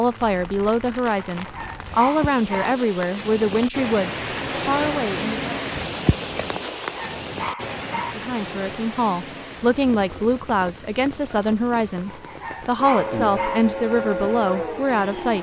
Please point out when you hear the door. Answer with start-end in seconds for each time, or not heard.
not heard.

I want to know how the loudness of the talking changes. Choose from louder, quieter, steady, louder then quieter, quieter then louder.
steady.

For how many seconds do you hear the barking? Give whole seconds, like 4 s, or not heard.
4 s.